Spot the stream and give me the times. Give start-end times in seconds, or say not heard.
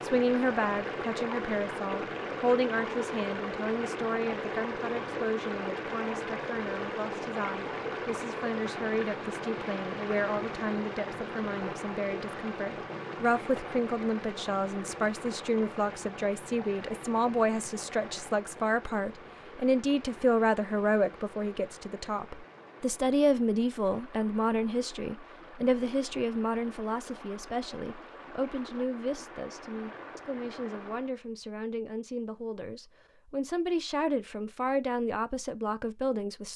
0.0-31.1.